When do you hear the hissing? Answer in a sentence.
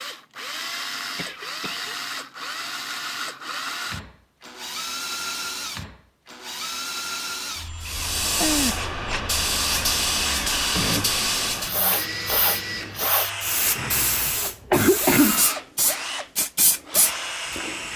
The hissing can be heard from 7.8 to 17.9 s.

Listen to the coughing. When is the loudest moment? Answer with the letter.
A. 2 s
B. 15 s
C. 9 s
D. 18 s
B.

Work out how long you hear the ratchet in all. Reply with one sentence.
You can't hear the ratchet here.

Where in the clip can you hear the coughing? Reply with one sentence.
You can hear the coughing from 1.1 to 1.9 s, from 8.4 to 9.2 s and from 13.8 to 15.4 s.